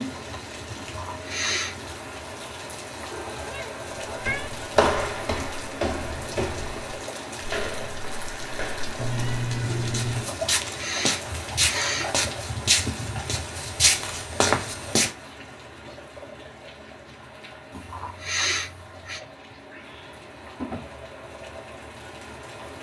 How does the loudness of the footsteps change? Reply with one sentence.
The loudness of the footsteps goes down, then up.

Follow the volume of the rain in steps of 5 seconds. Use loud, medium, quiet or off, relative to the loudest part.
loud, loud, loud, medium, medium.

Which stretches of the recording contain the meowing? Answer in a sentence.
You can hear the meowing from 3.1 to 4.5 s, from 8.9 to 10.3 s and from 19.7 to 20.9 s.